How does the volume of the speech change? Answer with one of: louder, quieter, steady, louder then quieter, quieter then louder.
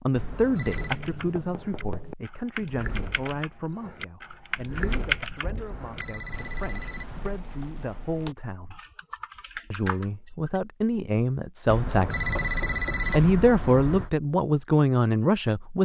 quieter then louder.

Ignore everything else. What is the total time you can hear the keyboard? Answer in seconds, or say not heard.
10 s.